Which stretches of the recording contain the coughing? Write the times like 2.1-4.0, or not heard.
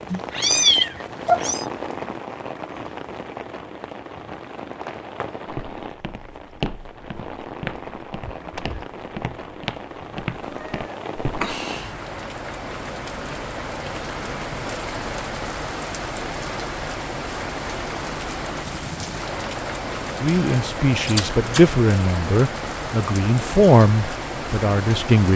8.2-8.8.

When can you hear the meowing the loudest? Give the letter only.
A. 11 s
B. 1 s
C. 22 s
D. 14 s
B.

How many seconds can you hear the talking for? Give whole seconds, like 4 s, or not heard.
5 s.